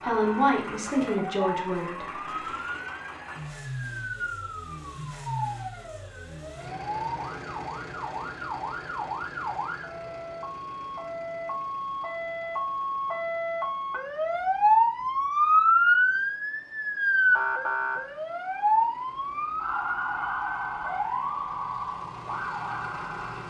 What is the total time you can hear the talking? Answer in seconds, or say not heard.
2 s.